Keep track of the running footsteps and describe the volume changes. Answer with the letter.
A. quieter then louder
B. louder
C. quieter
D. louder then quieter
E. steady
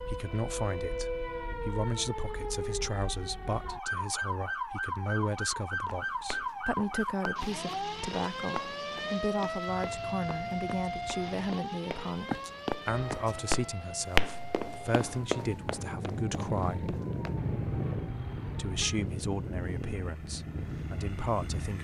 D.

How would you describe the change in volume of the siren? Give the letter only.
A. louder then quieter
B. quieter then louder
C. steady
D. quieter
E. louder
D.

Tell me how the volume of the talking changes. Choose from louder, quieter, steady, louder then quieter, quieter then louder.
steady.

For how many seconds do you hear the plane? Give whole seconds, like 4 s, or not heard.
9 s.